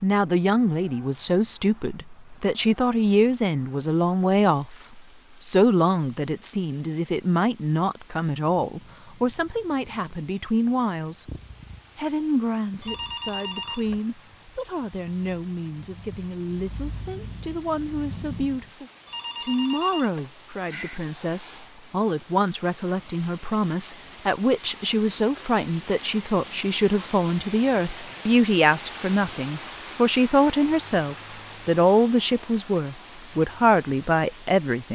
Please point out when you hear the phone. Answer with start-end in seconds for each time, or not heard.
12.8-14.0, 19.1-21.0.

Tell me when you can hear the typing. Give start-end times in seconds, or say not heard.
not heard.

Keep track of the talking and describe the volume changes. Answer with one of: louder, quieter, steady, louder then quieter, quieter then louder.
quieter then louder.